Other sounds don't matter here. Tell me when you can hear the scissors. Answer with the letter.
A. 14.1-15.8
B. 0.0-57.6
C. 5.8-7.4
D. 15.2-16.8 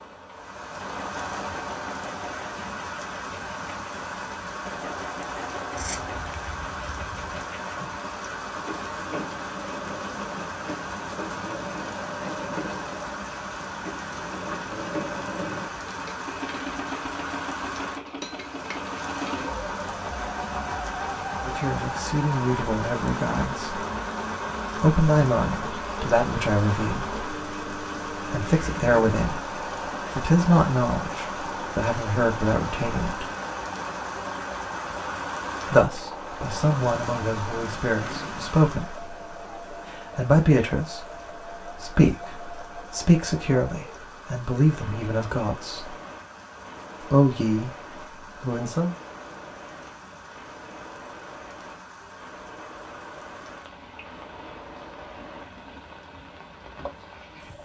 C.